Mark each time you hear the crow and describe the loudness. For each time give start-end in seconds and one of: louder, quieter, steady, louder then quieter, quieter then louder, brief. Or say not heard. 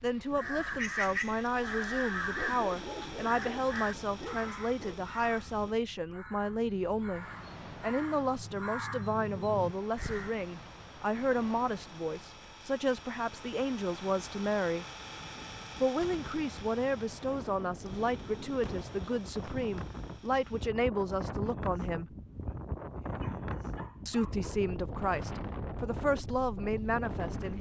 0.3-10.3 quieter then louder.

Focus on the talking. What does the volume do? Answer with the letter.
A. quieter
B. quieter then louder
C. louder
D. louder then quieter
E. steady
E.